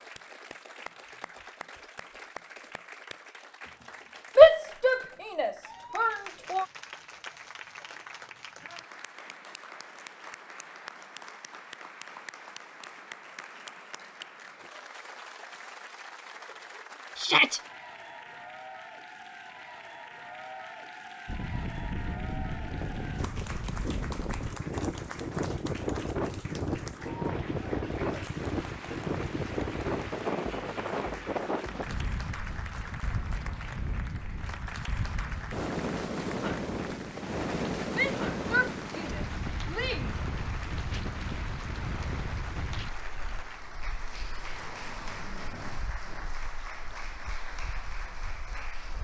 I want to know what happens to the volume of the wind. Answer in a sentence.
The volume of the wind goes down.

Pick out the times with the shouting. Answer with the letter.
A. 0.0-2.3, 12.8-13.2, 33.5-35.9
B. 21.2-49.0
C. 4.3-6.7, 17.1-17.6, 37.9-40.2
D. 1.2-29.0
C.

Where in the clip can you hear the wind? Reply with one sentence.
You can hear the wind from 21.2 to 49.0 s.